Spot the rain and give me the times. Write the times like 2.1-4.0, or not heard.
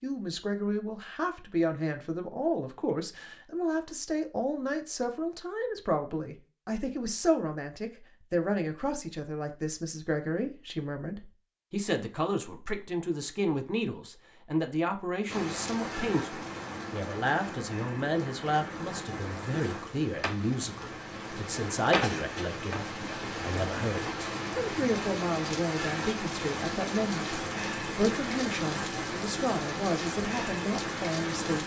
15.2-31.6.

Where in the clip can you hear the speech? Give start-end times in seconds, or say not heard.
0.0-31.6.